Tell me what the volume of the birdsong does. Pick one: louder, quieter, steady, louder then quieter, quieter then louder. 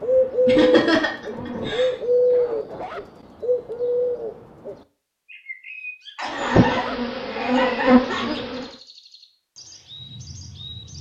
quieter.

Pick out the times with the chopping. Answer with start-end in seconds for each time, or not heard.
not heard.